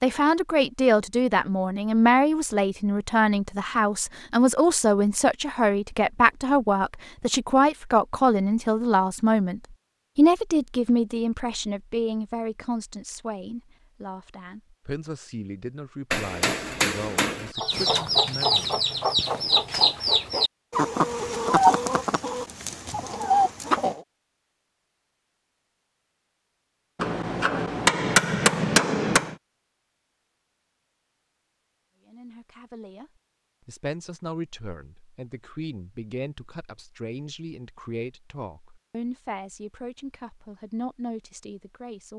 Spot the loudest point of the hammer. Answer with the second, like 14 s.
28 s.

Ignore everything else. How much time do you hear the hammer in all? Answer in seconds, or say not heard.
4 s.